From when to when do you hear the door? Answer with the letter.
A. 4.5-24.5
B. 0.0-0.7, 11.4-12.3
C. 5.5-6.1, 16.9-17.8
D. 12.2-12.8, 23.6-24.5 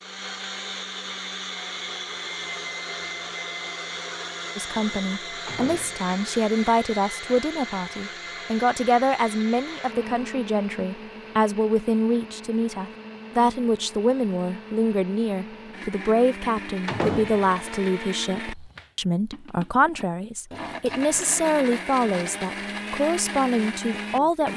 C.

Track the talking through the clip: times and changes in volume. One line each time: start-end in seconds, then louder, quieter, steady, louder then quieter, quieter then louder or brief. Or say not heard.
4.5-24.5 steady.